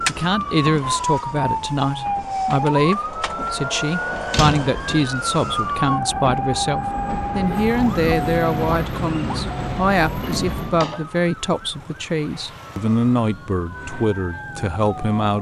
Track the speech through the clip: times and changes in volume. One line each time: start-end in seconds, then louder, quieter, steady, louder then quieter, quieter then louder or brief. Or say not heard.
0.1-15.3 steady.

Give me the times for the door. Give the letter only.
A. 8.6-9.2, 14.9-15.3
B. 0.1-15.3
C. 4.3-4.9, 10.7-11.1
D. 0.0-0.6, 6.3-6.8
C.